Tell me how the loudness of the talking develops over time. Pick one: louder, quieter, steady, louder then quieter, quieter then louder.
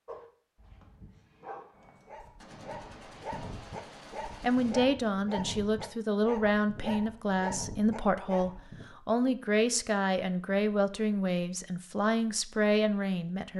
steady.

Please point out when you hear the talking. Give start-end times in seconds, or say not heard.
4.4-13.5.